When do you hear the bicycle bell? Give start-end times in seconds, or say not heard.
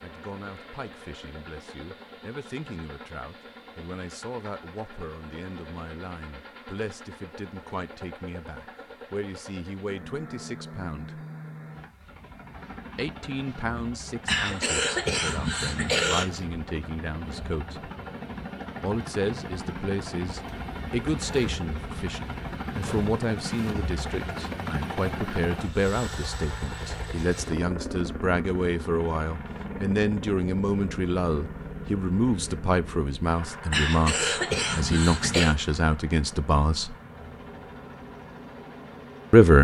not heard.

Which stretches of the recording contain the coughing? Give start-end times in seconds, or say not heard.
14.2-16.2, 33.7-35.5.